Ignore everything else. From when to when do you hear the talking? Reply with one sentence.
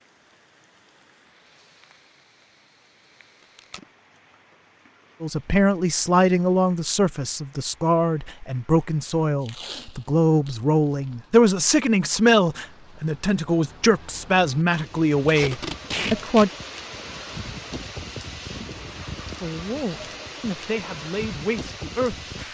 The talking can be heard from 5.2 to 16.5 s and from 19.4 to 22.3 s.